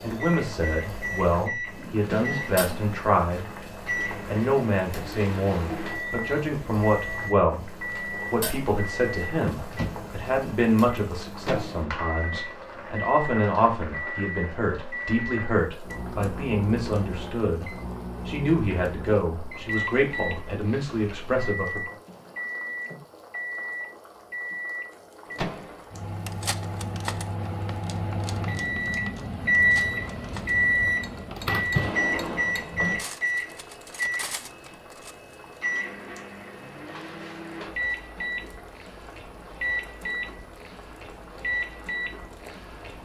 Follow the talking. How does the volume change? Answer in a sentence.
The volume of the talking stays about the same.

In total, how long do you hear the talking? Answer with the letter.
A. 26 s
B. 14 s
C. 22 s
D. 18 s
C.